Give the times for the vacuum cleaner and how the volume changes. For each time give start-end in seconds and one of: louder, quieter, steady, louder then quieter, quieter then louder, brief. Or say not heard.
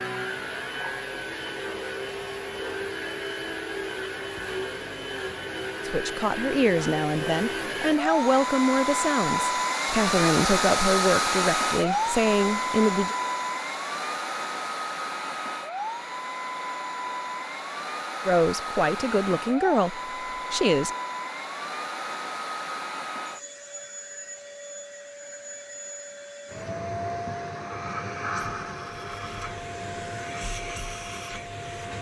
0.0-31.9 louder then quieter.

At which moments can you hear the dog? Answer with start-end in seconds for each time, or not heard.
not heard.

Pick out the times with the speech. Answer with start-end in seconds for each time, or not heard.
5.8-13.2, 18.2-20.9.